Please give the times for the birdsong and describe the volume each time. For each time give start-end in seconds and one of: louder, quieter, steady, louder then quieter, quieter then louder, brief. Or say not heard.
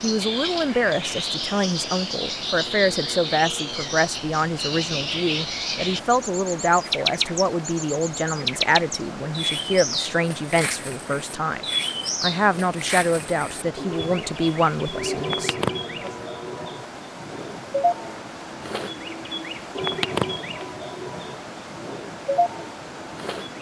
0.0-23.5 steady.